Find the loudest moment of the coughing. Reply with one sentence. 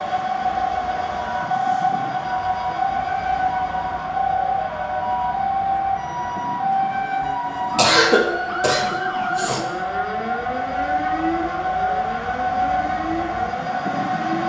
The volume of the coughing peaks at 8 seconds.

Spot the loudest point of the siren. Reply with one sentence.
The volume of the siren peaks at 7 seconds.